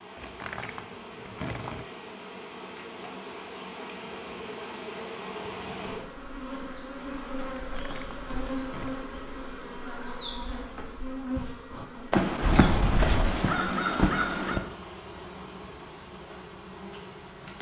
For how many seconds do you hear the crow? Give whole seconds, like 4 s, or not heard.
3 s.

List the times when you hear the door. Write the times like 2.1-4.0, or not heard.
0.1-1.9, 7.5-9.0, 12.4-13.4.